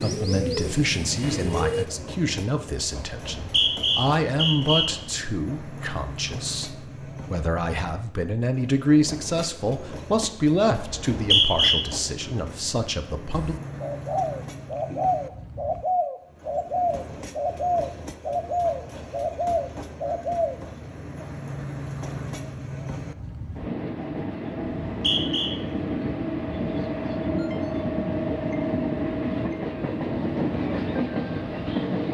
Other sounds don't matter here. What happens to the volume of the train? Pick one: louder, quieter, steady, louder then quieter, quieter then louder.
louder.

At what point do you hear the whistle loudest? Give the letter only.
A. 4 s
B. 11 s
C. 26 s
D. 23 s
B.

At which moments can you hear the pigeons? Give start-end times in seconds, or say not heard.
0.0-1.9, 13.3-20.6.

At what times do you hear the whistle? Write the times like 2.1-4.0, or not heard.
3.2-4.9, 10.9-11.8, 24.9-25.5.